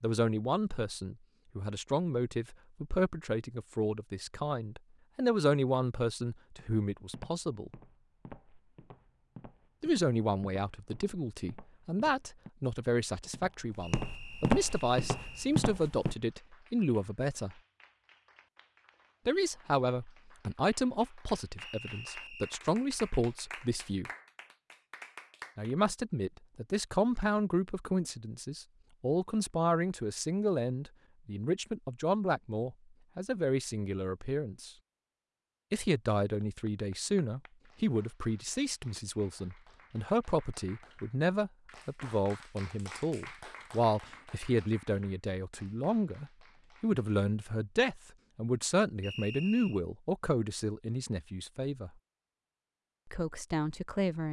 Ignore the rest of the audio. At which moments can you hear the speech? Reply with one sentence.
You can hear the speech from 0.0 to 7.7 s, from 9.8 to 17.6 s, from 19.2 to 24.1 s, from 25.6 to 34.7 s, from 35.7 to 51.9 s and from 53.0 to 54.2 s.